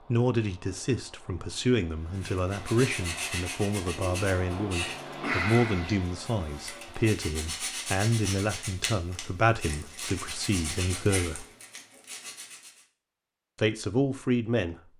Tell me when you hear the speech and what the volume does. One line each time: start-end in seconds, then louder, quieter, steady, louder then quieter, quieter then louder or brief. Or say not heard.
0.1-11.4 steady
13.6-14.8 brief.